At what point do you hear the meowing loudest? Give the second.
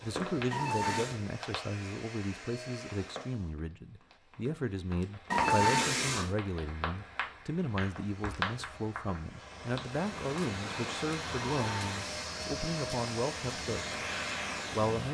6 s.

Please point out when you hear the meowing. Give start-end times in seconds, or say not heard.
0.5-1.1, 5.3-6.3, 11.4-12.3.